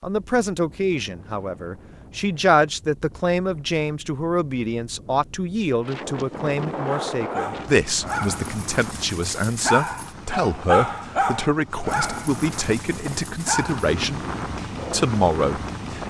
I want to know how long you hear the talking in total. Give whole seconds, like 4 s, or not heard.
15 s.